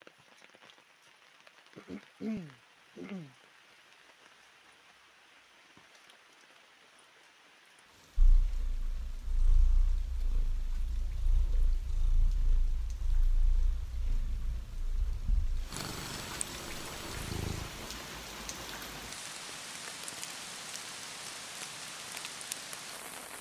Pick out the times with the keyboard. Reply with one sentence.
The keyboard can't be heard in this clip.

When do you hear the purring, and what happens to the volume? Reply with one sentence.
The purring can be heard from 8.2 to 17.9 s, getting louder.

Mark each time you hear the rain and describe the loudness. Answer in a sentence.
The rain can be heard from 0.0 to 23.3 s, getting louder.